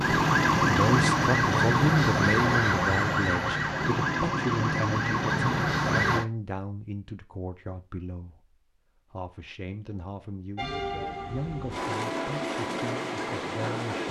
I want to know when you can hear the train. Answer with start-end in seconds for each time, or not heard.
10.6-14.0.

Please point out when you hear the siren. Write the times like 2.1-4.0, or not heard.
0.0-6.2.